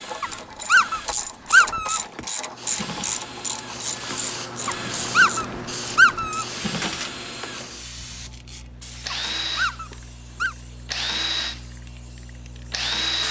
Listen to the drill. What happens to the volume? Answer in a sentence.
The volume of the drill goes up.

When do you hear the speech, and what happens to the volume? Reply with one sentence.
You can't hear the speech here.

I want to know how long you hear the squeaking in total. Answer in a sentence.
The squeaking can be heard for 5 seconds in total.